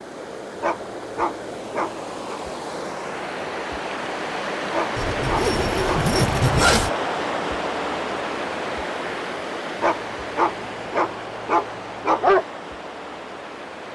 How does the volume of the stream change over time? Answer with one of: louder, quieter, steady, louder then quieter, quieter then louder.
louder then quieter.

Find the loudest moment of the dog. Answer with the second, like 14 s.
12 s.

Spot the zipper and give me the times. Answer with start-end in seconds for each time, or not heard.
5.0-6.9.